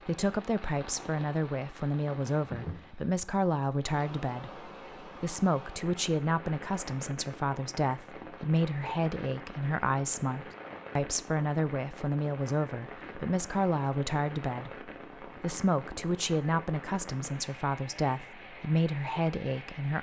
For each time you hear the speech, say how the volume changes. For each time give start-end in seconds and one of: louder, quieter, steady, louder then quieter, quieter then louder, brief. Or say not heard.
0.1-19.9 steady.